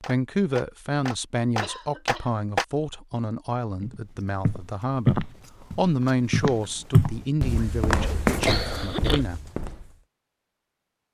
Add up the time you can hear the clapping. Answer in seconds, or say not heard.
3 s.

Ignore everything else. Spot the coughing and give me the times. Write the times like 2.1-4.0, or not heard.
1.6-2.3, 8.0-9.2.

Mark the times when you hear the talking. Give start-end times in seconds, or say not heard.
0.0-9.5.